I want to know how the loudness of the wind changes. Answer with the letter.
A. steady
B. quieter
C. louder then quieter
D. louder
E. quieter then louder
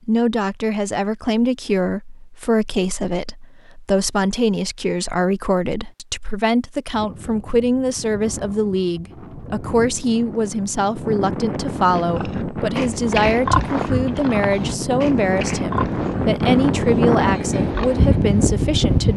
D.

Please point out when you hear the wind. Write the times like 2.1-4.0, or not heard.
6.9-19.1.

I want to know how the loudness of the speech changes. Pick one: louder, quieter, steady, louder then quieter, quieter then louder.
steady.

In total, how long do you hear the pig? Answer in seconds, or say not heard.
6 s.